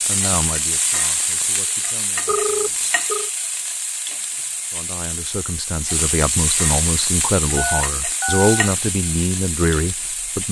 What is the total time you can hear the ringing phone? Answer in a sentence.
The ringing phone can be heard for 2 seconds in total.